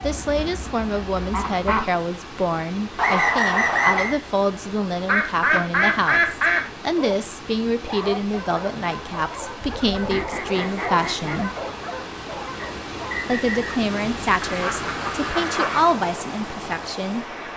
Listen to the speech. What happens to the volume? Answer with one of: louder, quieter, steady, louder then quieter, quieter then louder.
steady.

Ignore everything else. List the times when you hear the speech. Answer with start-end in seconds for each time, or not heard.
0.0-11.5, 13.2-17.5.